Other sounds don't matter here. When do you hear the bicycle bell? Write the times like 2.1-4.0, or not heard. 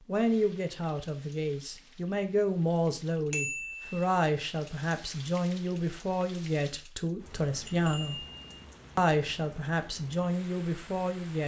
3.3-3.9, 7.6-8.7.